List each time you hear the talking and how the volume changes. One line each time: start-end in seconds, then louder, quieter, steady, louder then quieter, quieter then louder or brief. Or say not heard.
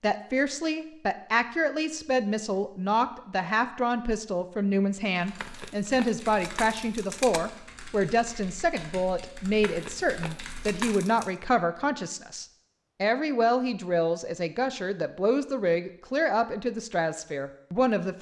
0.0-18.1 steady.